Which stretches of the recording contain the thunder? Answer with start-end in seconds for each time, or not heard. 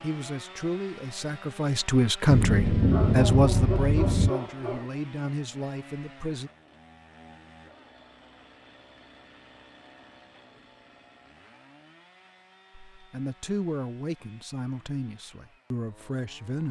2.3-4.3.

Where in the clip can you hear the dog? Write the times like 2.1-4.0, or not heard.
2.9-4.9.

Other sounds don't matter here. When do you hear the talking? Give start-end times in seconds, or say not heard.
0.0-6.5, 12.9-16.6.